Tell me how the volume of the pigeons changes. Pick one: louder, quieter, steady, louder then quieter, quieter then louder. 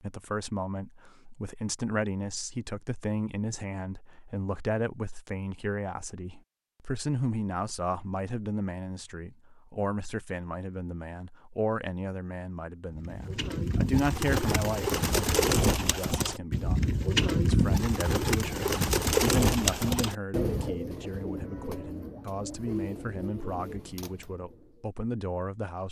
quieter.